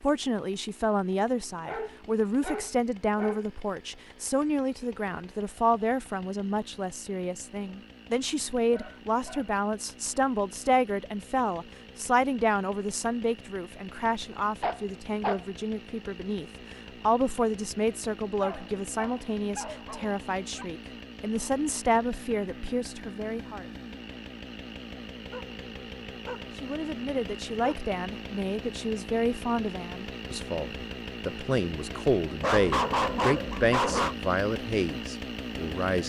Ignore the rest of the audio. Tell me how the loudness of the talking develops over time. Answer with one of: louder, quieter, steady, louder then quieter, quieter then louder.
steady.